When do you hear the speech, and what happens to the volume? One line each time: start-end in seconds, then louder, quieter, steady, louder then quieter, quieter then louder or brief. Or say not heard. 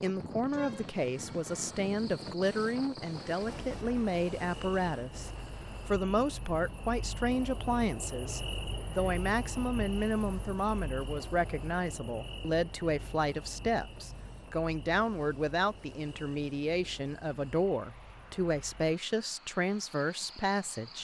0.0-20.9 steady.